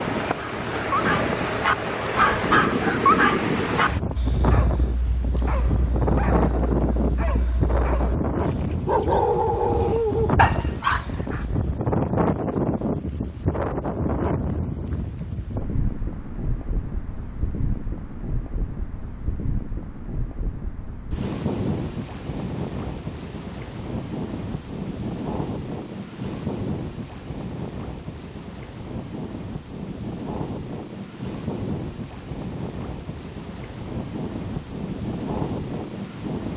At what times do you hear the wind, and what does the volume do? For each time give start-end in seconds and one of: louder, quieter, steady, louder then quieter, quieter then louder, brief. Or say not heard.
0.0-36.5 quieter.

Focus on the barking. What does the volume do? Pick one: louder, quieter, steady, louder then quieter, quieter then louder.
quieter then louder.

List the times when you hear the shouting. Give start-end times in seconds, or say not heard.
not heard.